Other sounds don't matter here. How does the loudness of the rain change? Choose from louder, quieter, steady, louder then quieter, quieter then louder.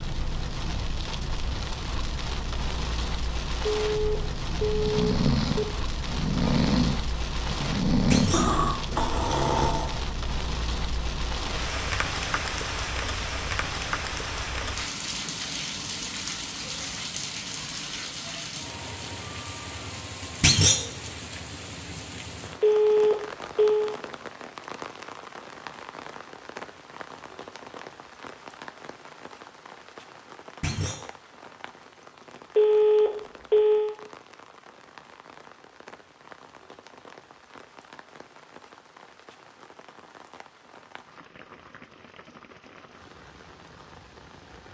quieter.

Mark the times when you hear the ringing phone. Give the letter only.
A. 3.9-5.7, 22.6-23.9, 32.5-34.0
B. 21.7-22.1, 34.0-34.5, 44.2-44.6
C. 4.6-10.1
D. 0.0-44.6
A.